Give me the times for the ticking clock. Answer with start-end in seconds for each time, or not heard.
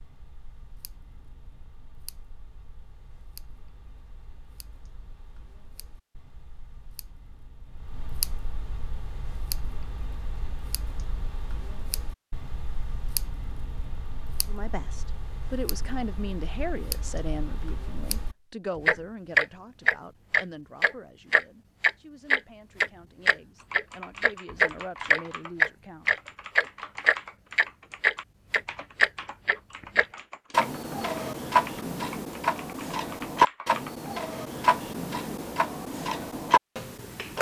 0.0-37.3.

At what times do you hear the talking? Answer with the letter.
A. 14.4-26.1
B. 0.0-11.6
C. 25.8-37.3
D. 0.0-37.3
A.